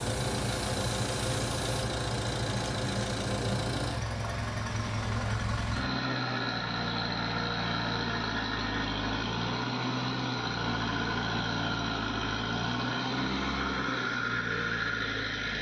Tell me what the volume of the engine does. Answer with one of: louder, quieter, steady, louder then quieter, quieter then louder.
steady.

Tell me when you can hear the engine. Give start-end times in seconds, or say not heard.
0.0-15.5.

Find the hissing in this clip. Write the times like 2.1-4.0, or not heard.
0.0-1.9.